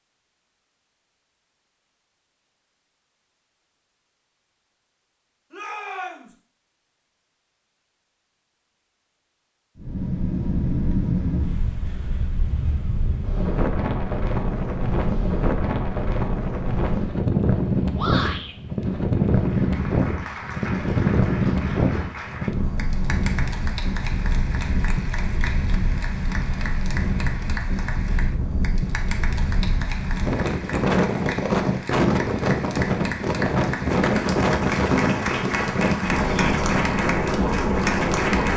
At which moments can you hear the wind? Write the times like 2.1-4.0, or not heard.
9.8-38.5.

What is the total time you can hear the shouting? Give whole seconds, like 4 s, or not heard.
2 s.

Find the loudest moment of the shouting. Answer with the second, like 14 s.
18 s.